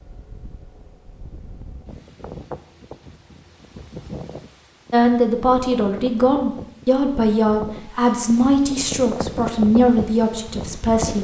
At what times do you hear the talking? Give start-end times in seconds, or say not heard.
4.9-11.1.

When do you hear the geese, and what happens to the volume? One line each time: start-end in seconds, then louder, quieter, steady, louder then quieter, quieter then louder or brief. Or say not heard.
not heard.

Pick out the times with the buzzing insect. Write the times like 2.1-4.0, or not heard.
not heard.